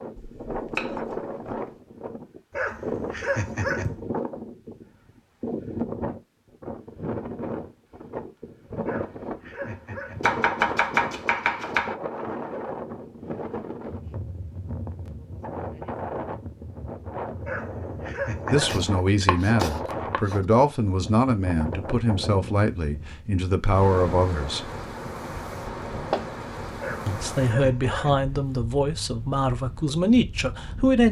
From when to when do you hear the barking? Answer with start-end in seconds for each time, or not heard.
2.5-4.0, 8.8-10.4, 17.4-18.9, 26.8-28.4.